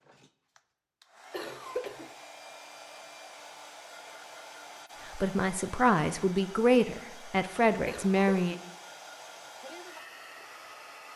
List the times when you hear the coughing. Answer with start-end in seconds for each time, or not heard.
1.3-2.1, 7.8-8.6.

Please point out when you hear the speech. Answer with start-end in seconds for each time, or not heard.
5.2-8.6.